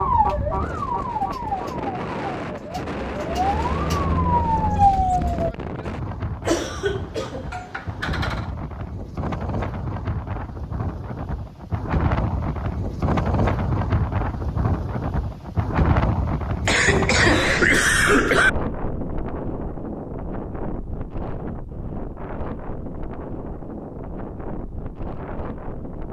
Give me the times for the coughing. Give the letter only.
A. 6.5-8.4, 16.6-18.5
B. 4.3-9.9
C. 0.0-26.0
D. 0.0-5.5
A.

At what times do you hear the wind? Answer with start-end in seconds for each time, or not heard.
0.0-26.0.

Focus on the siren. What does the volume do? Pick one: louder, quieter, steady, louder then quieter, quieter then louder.
quieter then louder.